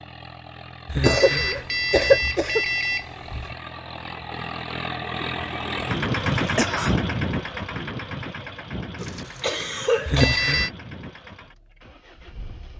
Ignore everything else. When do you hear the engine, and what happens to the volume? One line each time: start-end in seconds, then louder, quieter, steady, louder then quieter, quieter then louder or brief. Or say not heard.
0.0-12.7 louder then quieter.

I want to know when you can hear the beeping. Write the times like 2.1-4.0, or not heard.
0.8-3.5, 10.1-10.7.